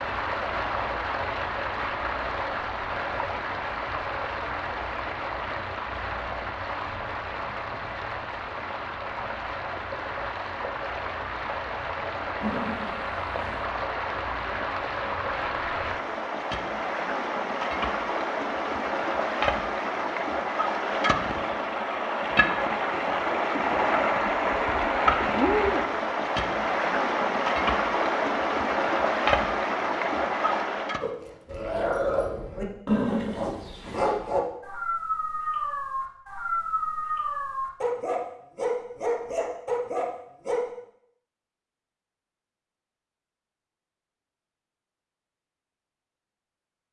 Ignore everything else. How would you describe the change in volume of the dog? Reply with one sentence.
The volume of the dog stays about the same.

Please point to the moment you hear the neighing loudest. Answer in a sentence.
The loudest moment of the neighing is at 33 seconds.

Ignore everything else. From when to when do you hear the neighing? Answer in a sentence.
You can hear the neighing from 12.4 to 13.7 s and from 32.9 to 34.1 s.